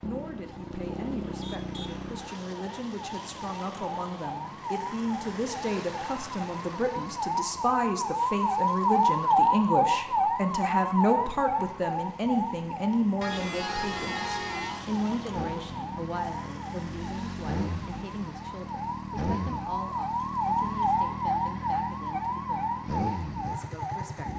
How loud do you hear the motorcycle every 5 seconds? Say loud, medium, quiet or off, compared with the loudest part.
loud, off, medium, loud, loud.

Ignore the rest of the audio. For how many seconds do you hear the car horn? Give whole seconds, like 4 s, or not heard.
2 s.